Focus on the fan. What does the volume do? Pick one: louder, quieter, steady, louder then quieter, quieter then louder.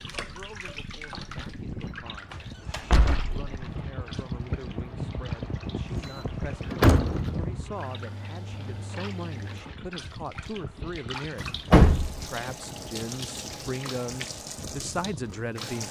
louder then quieter.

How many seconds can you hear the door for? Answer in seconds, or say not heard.
3 s.